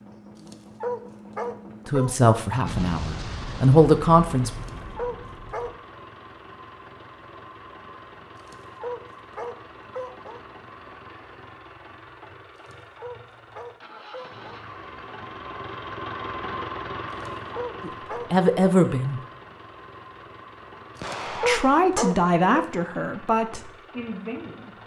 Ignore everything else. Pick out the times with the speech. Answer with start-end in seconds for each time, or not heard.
1.9-4.5, 17.8-19.2, 21.3-24.8.